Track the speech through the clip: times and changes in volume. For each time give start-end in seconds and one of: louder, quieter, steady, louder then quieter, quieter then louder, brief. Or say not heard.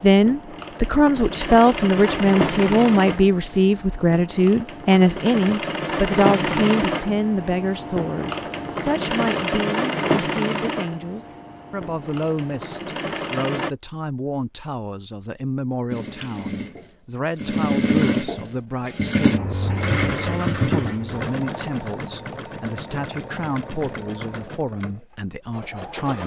0.0-26.2 quieter.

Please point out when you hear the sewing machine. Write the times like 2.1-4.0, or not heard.
0.0-13.7, 15.9-26.2.